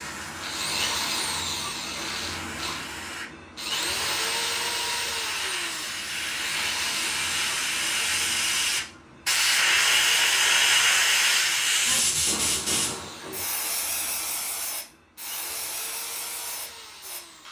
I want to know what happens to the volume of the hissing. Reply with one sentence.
The loudness of the hissing goes up, then down.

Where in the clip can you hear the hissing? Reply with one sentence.
You can hear the hissing from 0.0 to 17.2 s.